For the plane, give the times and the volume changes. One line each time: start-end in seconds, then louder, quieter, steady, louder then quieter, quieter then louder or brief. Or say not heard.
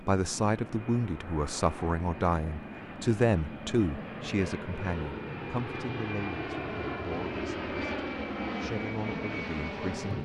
0.0-10.1 louder.